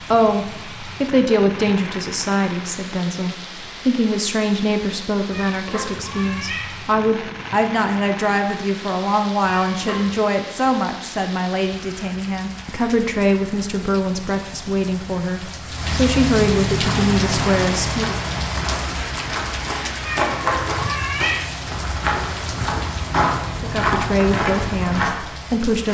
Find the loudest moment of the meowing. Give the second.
21 s.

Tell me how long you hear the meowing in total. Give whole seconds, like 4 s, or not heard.
4 s.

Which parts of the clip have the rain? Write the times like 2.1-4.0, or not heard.
0.0-25.9.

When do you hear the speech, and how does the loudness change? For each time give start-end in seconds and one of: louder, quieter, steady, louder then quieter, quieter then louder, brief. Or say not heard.
0.1-18.2 steady
23.6-25.9 brief.